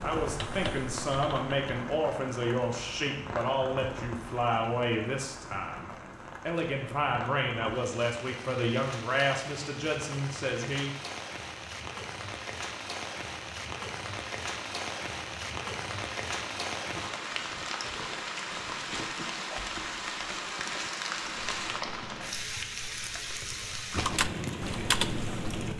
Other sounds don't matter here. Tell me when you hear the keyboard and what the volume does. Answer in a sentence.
You can hear the keyboard briefly from 0.2 to 1.6 s; and from 21.4 to 25.7 s, getting louder.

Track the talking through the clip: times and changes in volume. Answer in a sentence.
The talking can be heard from 0.0 to 10.9 s, at a steady volume.